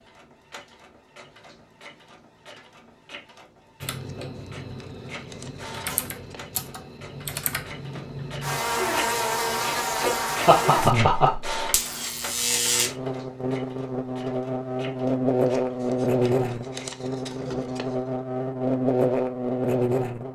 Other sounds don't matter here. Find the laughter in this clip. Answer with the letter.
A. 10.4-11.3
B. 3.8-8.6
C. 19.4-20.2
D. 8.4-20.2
A.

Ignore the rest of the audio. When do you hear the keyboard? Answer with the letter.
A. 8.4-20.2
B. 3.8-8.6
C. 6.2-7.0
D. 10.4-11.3
B.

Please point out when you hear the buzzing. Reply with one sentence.
The buzzing can be heard from 8.4 to 20.2 s.